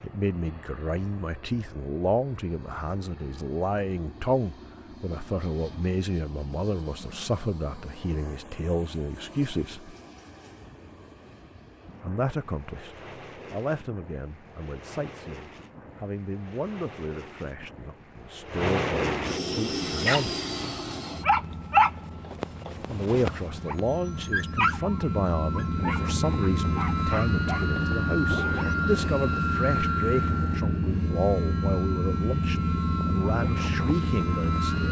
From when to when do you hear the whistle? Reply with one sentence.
The whistle can't be heard in this clip.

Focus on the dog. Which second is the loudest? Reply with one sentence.
The loudest moment of the dog is at 22 seconds.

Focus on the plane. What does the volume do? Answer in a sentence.
The loudness of the plane goes up.